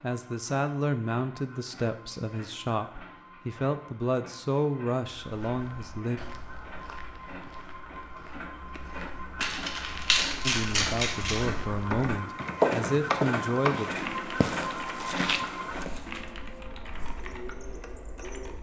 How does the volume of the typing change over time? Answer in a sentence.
The volume of the typing goes down.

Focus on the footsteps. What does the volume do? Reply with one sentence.
The volume of the footsteps goes up, then down.